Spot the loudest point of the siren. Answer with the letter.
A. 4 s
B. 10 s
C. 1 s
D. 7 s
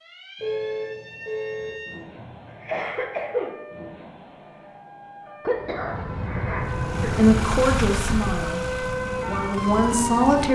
B.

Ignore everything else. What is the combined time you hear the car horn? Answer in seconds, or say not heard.
2 s.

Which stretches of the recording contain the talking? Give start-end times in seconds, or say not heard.
7.0-10.5.